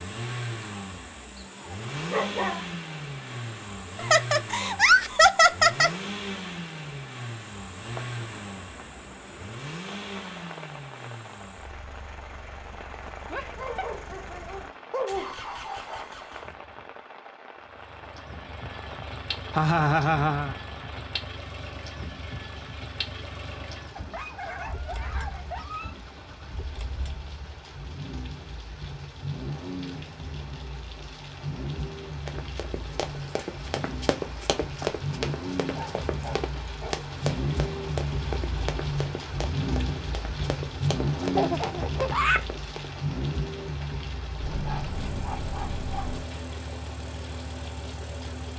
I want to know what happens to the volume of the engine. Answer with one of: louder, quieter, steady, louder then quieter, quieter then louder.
quieter then louder.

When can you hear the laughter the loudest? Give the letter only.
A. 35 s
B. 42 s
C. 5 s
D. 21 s
C.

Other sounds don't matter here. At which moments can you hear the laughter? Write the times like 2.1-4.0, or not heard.
4.0-5.9, 19.5-20.5, 41.4-42.4.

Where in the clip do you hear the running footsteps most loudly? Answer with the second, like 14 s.
35 s.